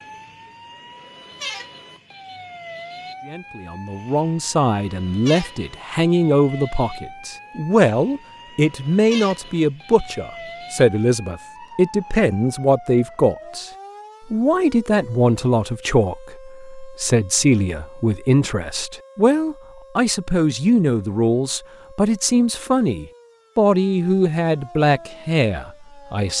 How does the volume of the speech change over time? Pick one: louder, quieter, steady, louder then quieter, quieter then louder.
steady.